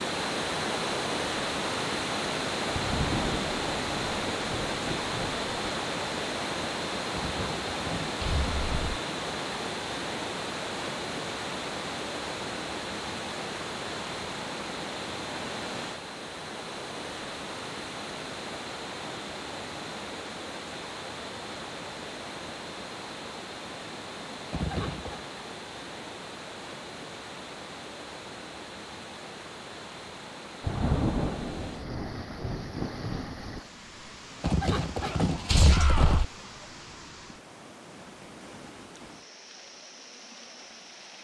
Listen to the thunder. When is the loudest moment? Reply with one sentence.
The volume of the thunder peaks at 31 seconds.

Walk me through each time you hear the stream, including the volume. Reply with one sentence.
The stream can be heard from 0.0 to 41.1 s, getting quieter.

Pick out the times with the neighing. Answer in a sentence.
The neighing can be heard from 7.2 to 9.0 s, from 24.5 to 25.2 s and from 34.4 to 36.2 s.